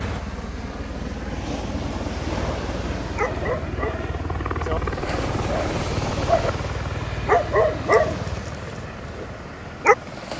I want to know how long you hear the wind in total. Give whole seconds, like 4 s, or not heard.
10 s.